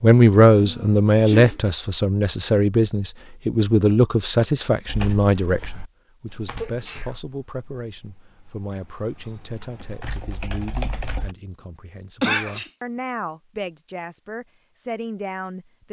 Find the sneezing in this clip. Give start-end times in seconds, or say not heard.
0.5-1.6, 6.5-7.2, 12.2-12.7.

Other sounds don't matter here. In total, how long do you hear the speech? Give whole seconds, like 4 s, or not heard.
16 s.